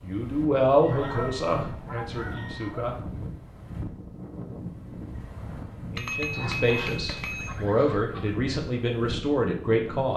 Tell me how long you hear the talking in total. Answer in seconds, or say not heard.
7 s.